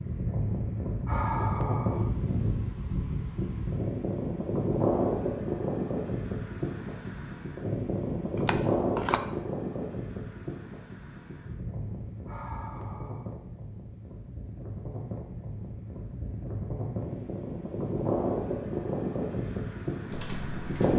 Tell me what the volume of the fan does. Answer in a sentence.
The loudness of the fan goes down, then up.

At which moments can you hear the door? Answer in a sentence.
You can't hear the door here.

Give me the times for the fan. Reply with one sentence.
The fan can be heard from 0.0 to 20.9 s.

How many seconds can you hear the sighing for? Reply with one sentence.
The sighing can be heard for 2 seconds in total.